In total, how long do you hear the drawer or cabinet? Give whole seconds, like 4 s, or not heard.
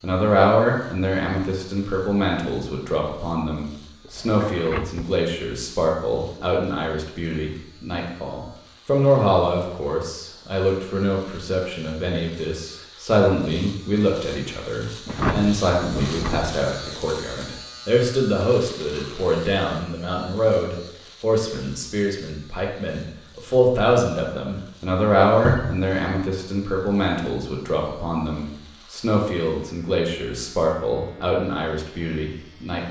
3 s.